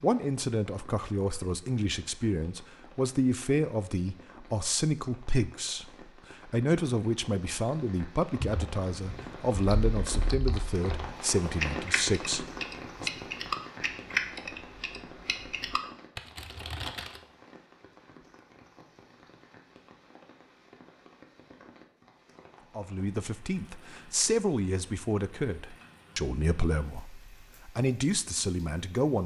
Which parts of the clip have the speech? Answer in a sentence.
The speech can be heard from 0.0 to 13.1 s and from 22.8 to 29.2 s.